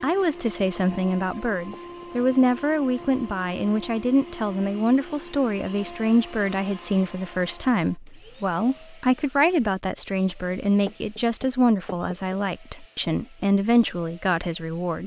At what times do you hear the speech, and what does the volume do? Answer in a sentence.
You can hear the speech from 0.0 to 15.0 s, at a steady volume.